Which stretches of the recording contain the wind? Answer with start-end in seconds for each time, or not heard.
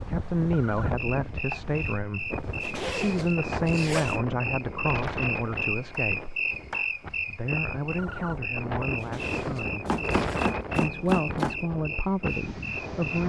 0.0-13.2.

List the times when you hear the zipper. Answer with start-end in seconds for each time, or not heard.
2.2-4.2, 8.8-10.4.